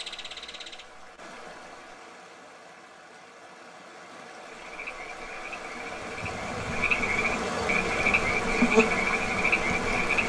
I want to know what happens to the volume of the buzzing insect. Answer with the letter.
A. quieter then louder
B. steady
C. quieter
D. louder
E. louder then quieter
E.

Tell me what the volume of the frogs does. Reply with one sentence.
The volume of the frogs goes up.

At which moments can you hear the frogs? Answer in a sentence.
You can hear the frogs from 4.6 to 10.2 s.